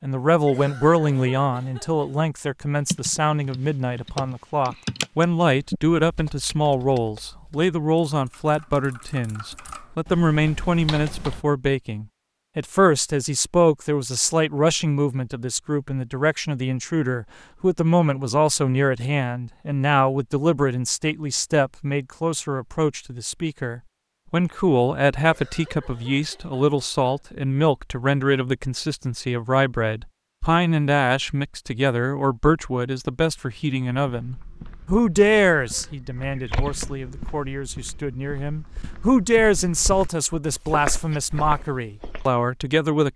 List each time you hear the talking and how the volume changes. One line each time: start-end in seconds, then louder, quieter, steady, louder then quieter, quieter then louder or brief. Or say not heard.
0.0-43.1 steady.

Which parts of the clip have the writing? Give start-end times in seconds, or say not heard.
not heard.